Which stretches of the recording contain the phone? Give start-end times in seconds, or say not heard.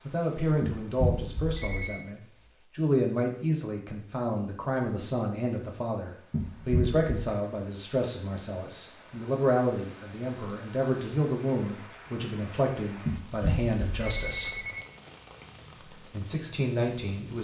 0.6-2.0, 6.3-7.0, 13.1-14.8.